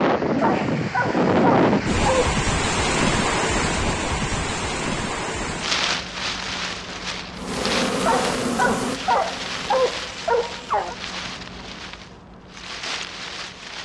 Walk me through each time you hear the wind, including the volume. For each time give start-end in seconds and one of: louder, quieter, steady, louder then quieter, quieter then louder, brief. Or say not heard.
0.0-13.7 quieter.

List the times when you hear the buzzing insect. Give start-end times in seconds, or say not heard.
7.3-9.8.